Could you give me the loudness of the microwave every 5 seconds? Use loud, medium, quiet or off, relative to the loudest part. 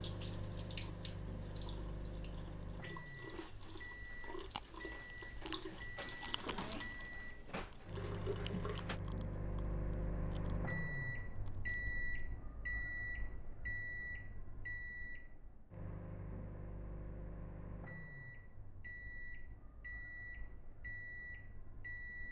medium, loud, loud, medium, medium.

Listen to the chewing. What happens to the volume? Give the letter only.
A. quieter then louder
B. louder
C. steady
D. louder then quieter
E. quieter
E.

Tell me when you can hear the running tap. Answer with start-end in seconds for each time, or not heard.
0.0-9.0.